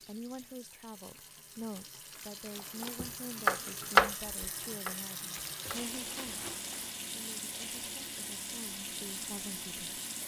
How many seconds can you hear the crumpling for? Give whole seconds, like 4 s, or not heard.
3 s.